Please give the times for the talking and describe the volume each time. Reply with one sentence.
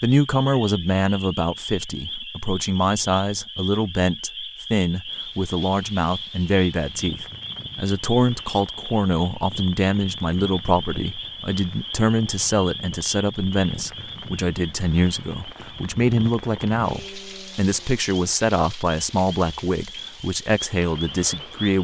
The talking can be heard from 0.0 to 21.7 s, at a steady volume.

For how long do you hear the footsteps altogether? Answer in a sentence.
You can't hear the footsteps here.